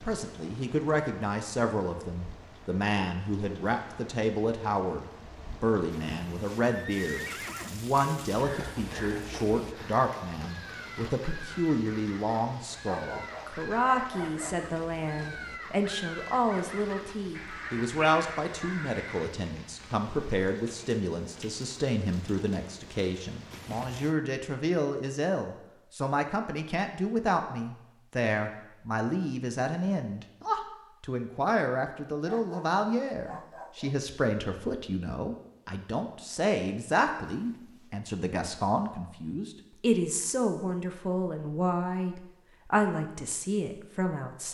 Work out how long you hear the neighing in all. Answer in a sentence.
The neighing can be heard for 3 seconds in total.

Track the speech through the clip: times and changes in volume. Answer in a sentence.
You can hear the speech from 0.0 to 44.4 s, at a steady volume.